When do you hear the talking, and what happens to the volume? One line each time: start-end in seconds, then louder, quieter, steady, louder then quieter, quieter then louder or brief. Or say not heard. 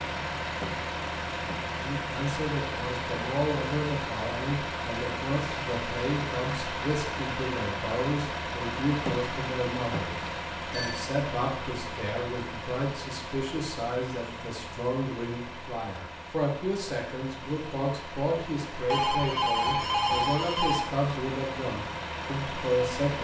1.8-23.1 steady.